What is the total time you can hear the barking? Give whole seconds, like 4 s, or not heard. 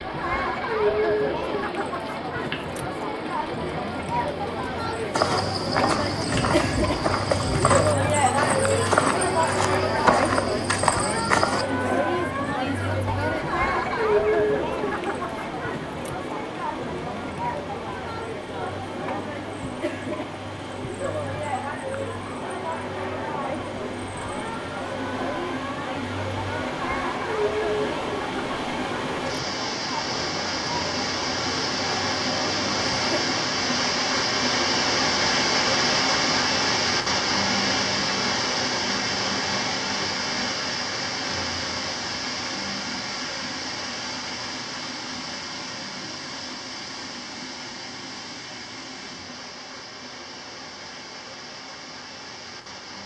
not heard.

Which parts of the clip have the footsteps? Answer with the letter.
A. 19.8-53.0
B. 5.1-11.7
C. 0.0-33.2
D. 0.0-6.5
B.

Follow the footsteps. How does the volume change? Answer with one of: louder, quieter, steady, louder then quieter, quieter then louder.
steady.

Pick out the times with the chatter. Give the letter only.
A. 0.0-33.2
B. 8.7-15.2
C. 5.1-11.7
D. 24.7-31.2
A.